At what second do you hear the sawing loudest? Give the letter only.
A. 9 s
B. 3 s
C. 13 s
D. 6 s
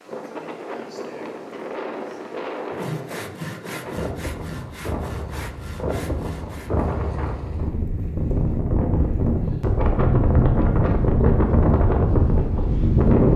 B.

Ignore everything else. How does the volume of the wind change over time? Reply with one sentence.
The loudness of the wind goes up.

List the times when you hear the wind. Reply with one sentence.
The wind can be heard from 0.0 to 13.3 s.